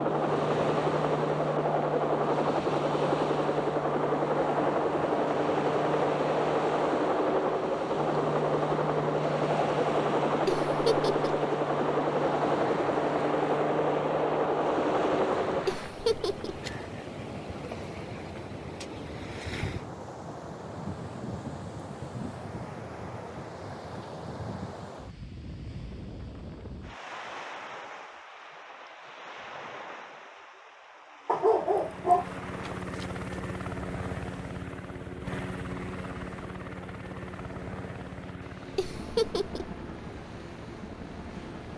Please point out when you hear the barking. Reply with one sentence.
You can hear the barking from 31.2 to 33.0 s.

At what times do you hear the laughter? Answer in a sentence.
You can hear the laughter from 10.4 to 11.2 s, from 15.7 to 16.6 s and from 38.8 to 39.7 s.